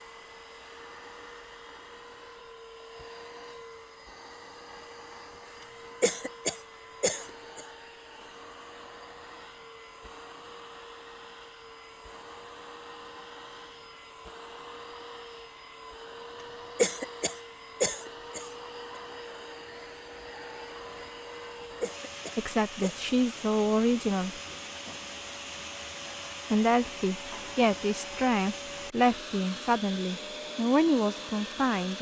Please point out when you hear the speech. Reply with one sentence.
You can hear the speech from 22.4 to 24.4 s and from 26.5 to 31.9 s.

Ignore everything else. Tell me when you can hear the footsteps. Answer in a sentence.
The footsteps can't be heard in this clip.